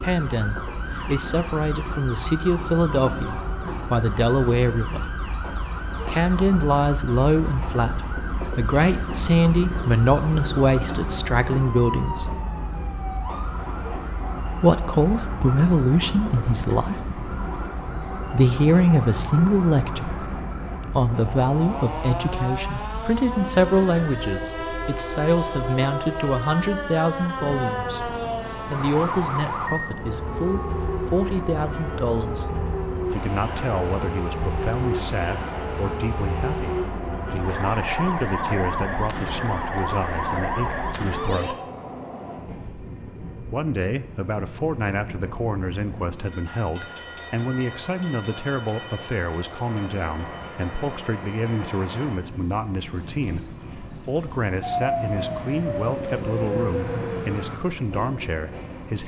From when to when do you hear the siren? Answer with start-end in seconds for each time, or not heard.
0.0-41.5, 54.6-57.6.